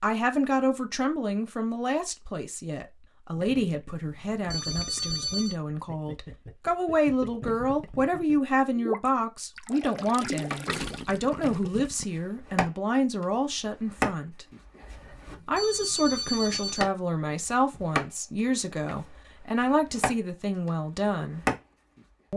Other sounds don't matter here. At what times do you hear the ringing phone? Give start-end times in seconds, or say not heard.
4.0-5.5, 14.9-16.9.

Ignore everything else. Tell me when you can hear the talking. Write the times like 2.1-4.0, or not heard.
0.0-14.4, 15.4-21.4.